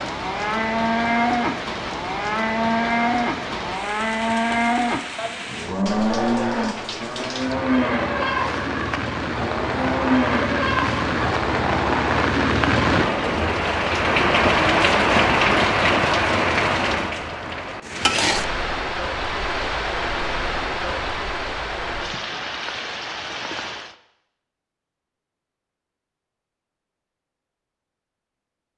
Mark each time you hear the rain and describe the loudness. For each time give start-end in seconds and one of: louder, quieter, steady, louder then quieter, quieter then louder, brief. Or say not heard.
0.0-23.9 louder then quieter.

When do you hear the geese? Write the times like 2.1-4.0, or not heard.
not heard.